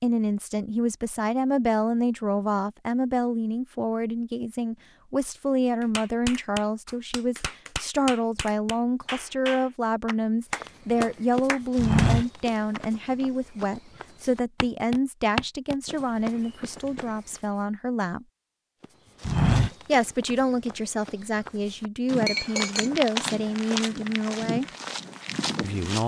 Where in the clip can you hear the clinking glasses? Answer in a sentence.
The clinking glasses can be heard from 22.2 to 22.9 s.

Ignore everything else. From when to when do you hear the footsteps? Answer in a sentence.
The footsteps can be heard from 10.6 to 17.1 s and from 18.8 to 26.0 s.